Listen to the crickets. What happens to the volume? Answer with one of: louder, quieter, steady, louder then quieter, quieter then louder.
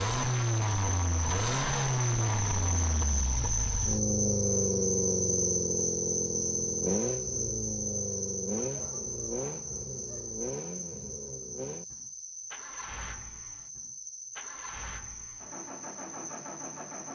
quieter.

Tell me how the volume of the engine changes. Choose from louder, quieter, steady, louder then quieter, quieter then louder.
quieter.